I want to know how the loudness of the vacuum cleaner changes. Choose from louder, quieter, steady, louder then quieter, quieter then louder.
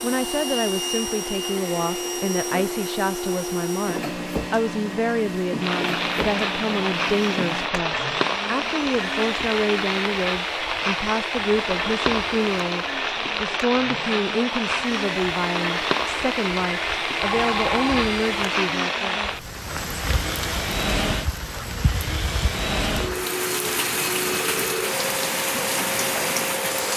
quieter then louder.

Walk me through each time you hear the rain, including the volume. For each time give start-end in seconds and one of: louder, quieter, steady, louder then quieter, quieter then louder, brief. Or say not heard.
5.5-26.9 steady.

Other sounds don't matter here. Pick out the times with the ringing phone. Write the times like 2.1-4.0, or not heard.
17.1-18.1.